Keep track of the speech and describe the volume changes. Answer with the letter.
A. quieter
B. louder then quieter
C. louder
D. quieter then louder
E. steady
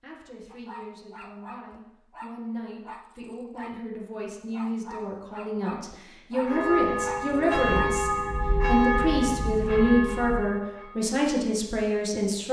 C.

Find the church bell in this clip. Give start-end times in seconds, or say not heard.
6.3-10.9.